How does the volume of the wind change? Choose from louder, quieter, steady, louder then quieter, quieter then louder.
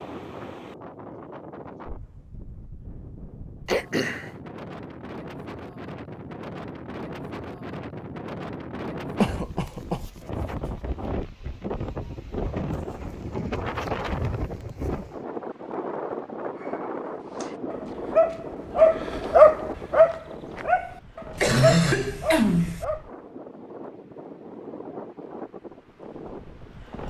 louder then quieter.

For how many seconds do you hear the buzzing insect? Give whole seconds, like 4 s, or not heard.
not heard.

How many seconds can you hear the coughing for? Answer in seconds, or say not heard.
3 s.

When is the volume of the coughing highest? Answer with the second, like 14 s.
22 s.